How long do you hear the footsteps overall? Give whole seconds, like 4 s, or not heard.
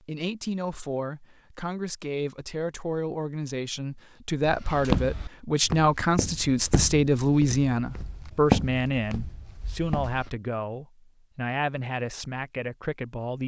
6 s.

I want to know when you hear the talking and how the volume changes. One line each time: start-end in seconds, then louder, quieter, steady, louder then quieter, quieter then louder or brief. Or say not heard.
0.1-13.4 louder then quieter.